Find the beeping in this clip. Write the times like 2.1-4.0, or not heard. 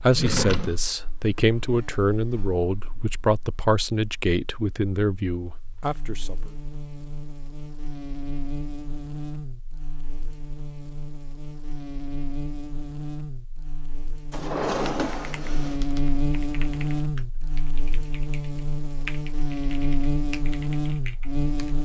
not heard.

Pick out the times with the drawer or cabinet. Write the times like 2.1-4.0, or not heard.
0.1-0.8, 14.3-15.8.